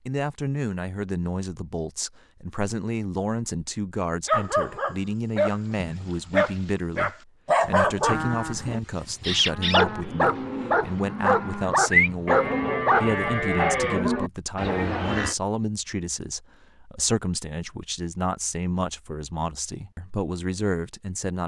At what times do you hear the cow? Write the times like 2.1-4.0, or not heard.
8.1-15.3.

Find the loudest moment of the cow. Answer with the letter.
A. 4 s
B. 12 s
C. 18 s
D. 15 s
B.